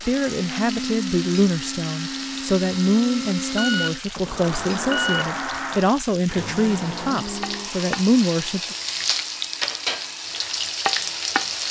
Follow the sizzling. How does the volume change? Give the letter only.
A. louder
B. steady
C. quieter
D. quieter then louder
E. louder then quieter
A.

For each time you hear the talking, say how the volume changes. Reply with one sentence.
The talking can be heard from 0.0 to 8.8 s, at a steady volume.